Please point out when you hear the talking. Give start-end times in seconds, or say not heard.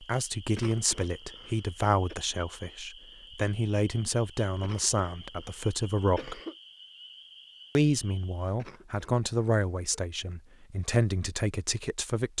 0.0-6.4, 7.8-12.3.